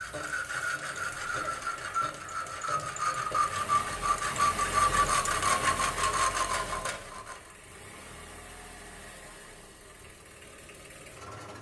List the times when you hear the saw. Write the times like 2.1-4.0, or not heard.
0.0-7.5.